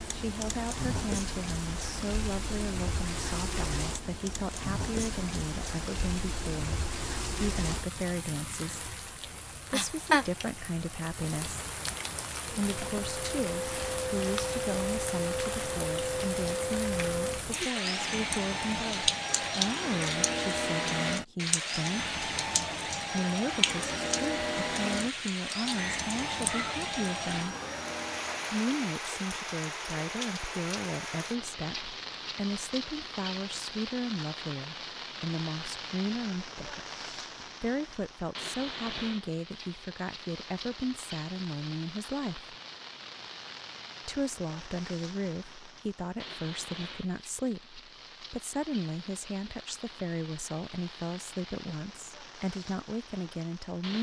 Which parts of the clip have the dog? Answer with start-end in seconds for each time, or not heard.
not heard.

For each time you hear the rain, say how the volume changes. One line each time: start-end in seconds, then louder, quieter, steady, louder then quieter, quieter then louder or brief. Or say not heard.
0.0-53.9 quieter.